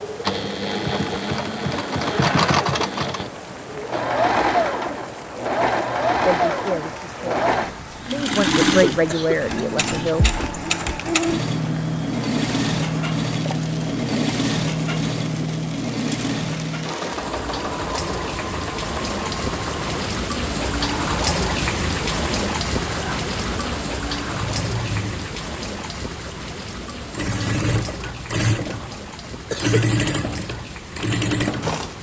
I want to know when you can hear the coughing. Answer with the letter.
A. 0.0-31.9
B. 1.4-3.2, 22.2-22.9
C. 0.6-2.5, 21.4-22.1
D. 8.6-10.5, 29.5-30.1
D.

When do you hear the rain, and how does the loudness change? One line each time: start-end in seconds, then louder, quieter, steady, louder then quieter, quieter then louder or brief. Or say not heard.
0.0-31.9 louder then quieter.